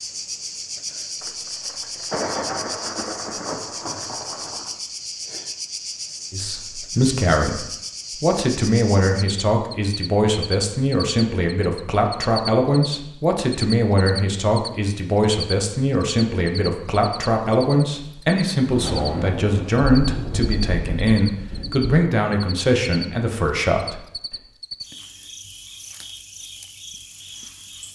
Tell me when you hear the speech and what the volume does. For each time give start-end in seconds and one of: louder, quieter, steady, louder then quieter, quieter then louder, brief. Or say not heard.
6.3-24.0 steady.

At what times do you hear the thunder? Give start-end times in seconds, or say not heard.
1.2-4.8, 18.7-22.1.